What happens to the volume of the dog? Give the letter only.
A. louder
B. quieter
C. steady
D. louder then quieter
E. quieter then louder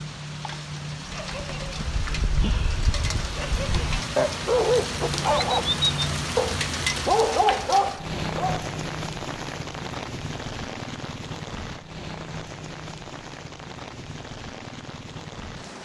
A.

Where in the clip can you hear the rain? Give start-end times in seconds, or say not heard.
0.0-15.8.